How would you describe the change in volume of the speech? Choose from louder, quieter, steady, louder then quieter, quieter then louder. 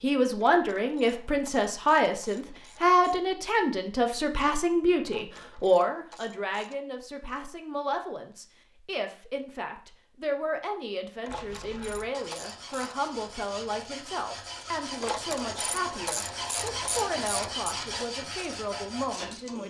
quieter.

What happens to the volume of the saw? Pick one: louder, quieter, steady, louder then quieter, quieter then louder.
louder.